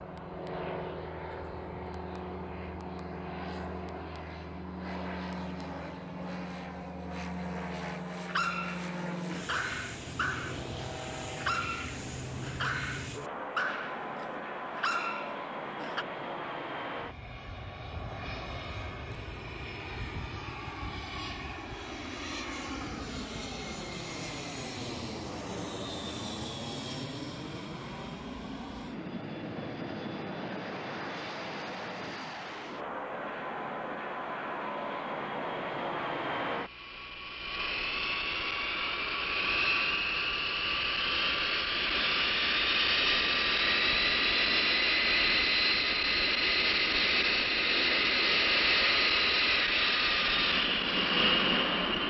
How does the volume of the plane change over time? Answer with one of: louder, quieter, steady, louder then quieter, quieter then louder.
louder.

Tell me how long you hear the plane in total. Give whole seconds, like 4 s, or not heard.
52 s.